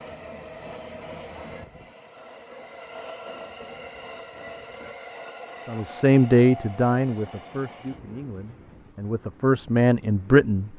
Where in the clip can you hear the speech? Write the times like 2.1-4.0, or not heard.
5.7-10.7.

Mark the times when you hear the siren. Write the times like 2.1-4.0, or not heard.
not heard.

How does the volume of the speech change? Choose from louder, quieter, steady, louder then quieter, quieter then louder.
quieter then louder.